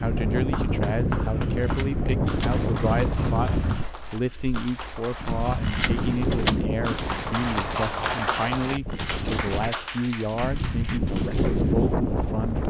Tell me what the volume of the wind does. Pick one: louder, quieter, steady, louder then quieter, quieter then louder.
quieter then louder.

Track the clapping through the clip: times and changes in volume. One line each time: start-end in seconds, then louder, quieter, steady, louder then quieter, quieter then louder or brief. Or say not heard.
0.3-11.7 louder then quieter.